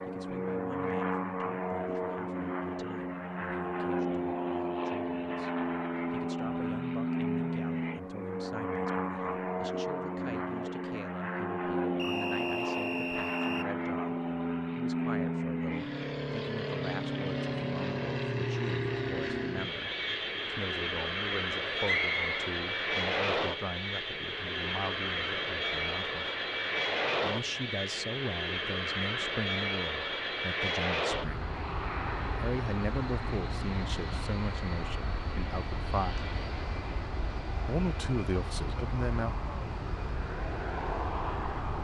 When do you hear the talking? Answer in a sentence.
The talking can be heard from 0.0 to 26.2 s, from 27.2 to 31.5 s, from 32.4 to 36.3 s and from 37.6 to 39.4 s.